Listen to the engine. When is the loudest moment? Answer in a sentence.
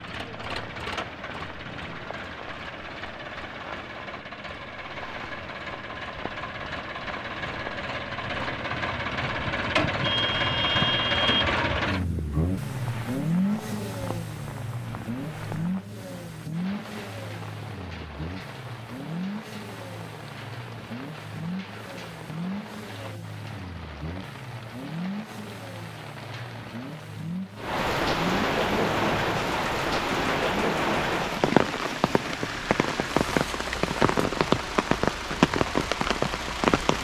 The loudest moment of the engine is at 11 seconds.